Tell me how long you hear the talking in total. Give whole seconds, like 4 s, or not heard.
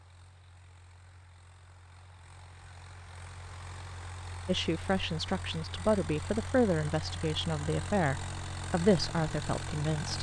6 s.